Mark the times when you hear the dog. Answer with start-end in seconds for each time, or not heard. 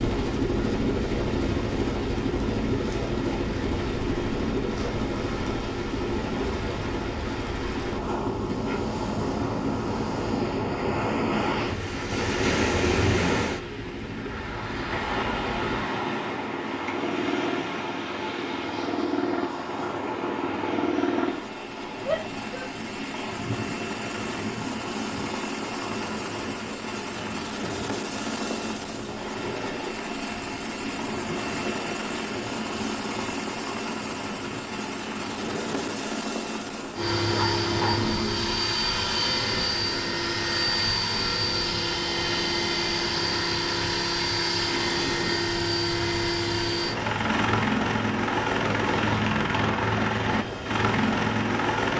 37.3-38.5.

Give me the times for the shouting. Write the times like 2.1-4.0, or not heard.
22.1-22.7.